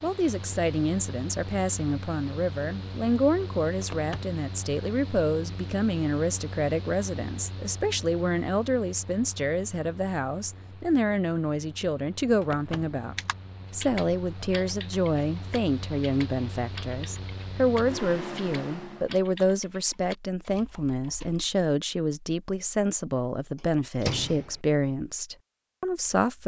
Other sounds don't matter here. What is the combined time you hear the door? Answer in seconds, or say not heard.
2 s.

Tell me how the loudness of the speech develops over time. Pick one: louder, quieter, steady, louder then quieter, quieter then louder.
steady.